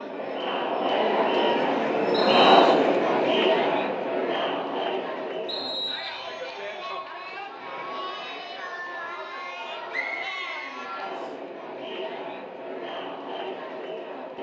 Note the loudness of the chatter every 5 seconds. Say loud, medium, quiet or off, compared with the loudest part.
loud, quiet, quiet.